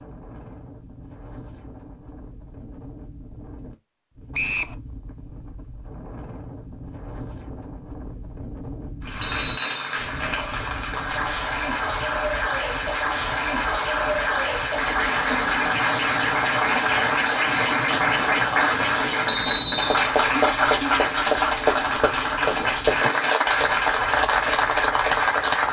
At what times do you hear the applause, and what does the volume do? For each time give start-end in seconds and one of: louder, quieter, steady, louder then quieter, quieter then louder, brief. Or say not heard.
9.0-25.6 louder.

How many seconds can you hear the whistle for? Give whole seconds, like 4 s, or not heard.
2 s.